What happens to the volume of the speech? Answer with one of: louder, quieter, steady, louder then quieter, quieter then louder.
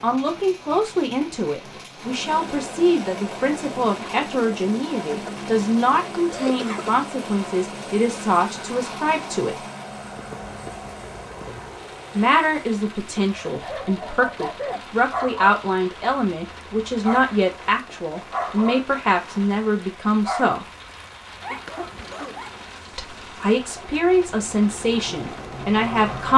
steady.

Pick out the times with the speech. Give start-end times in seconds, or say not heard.
0.0-9.7, 12.2-20.6, 22.9-26.3.